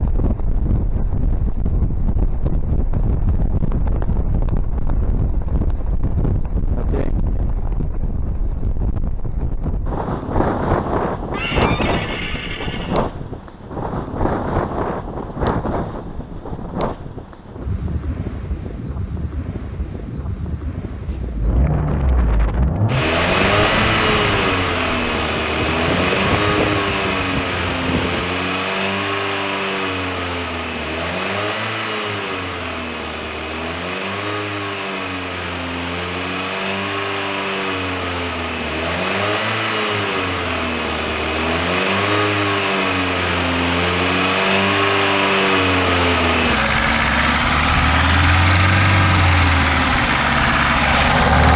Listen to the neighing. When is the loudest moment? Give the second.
12 s.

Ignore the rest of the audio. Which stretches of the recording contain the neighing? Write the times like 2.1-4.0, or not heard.
11.3-13.1.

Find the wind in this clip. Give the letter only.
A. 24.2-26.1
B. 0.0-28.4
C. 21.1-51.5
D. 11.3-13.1
B.